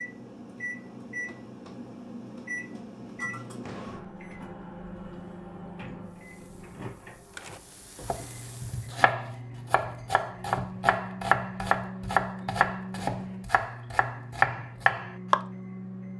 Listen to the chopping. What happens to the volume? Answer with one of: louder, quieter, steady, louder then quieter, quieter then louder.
louder.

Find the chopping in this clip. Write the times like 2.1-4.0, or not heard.
7.3-15.4.